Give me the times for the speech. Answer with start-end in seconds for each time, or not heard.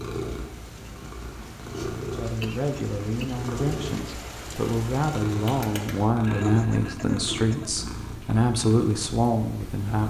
2.1-10.0.